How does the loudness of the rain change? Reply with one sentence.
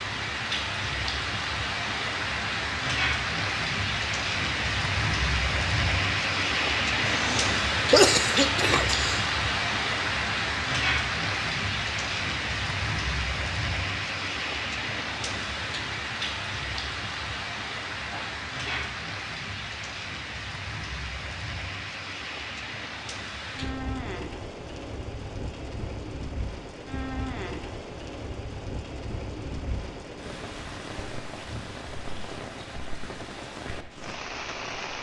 The volume of the rain goes down.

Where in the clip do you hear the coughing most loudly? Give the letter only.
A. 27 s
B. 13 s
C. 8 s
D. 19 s
C.